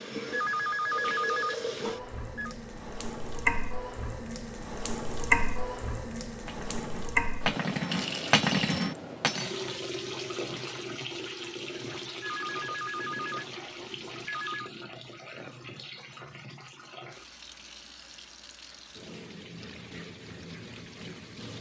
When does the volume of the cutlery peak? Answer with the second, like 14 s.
8 s.